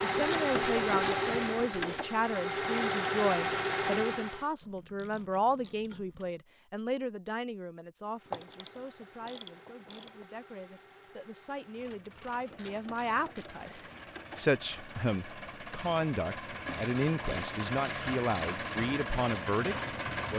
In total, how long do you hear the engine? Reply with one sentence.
You can hear the engine for 17 seconds altogether.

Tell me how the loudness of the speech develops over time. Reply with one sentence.
The volume of the speech goes down, then up.